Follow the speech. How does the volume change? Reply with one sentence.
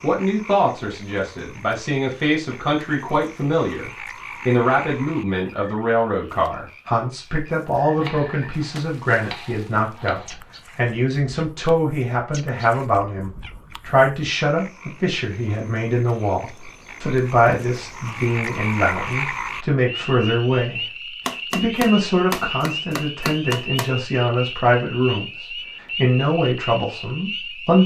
The loudness of the speech stays about the same.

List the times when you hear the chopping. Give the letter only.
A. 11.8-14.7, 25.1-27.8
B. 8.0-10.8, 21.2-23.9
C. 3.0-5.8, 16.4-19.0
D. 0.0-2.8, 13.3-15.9
B.